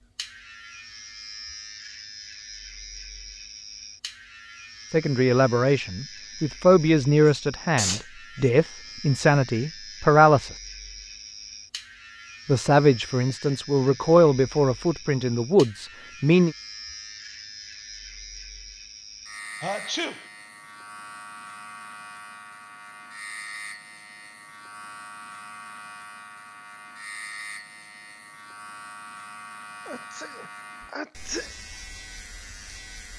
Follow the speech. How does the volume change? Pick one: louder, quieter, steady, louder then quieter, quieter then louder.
steady.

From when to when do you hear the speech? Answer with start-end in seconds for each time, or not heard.
4.9-10.5, 12.4-16.6.